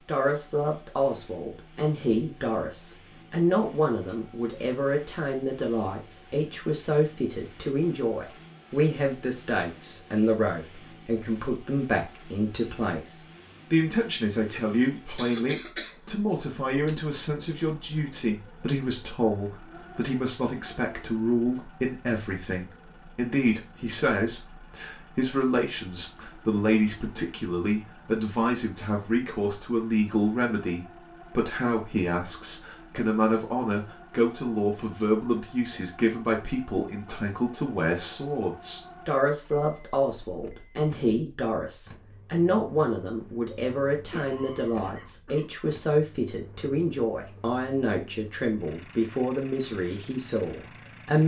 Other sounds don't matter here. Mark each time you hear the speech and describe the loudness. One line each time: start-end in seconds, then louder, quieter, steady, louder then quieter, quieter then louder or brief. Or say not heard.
0.1-51.2 steady.